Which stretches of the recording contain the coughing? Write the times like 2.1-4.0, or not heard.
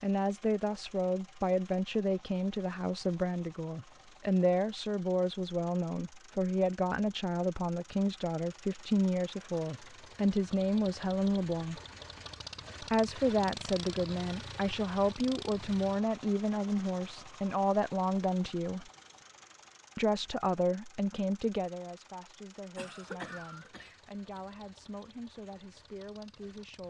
22.8-24.4.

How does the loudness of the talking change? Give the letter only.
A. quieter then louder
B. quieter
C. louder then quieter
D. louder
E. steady
B.